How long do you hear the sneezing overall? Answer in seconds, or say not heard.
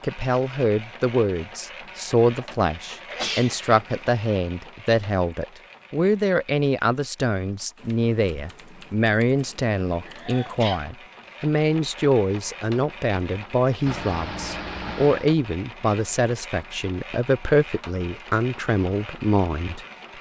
3 s.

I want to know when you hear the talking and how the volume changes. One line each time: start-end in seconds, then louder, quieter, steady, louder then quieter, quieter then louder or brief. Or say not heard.
0.0-19.9 steady.